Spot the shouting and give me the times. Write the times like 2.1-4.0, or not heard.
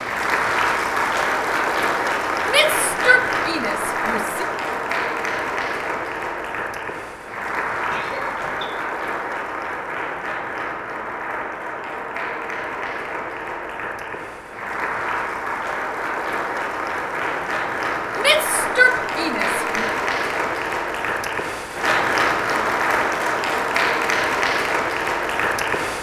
2.5-4.5, 18.1-19.9.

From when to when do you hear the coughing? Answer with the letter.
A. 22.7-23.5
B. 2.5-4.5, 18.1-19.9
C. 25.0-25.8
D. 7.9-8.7
D.